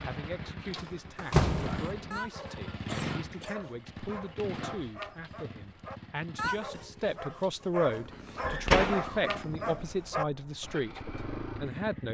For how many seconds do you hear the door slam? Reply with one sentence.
The door slam can be heard for 2 seconds in total.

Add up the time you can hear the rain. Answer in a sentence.
You can't hear the rain here.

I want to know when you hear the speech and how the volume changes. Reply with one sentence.
The speech can be heard from 0.0 to 11.0 s, getting louder; and briefly from 11.6 to 12.1 s.